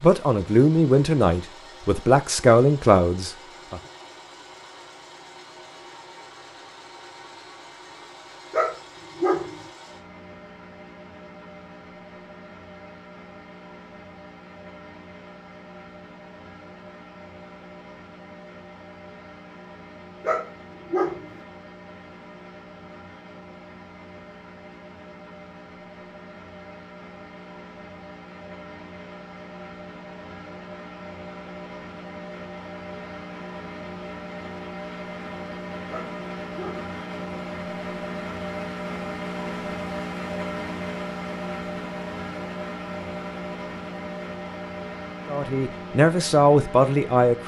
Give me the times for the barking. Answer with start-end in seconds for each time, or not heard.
8.5-9.7, 20.2-21.4, 35.9-36.9.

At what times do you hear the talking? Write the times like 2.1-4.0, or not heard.
0.0-3.8, 45.2-47.4.